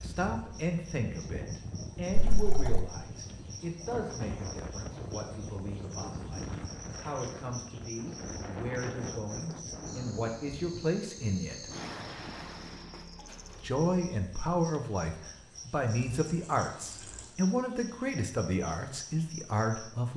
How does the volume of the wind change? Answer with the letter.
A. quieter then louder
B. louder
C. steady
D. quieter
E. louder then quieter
C.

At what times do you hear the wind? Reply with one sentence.
You can hear the wind from 0.0 to 13.1 s.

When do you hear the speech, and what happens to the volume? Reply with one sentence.
You can hear the speech from 0.0 to 11.7 s, getting quieter then louder; and from 13.6 to 20.1 s, at a steady volume.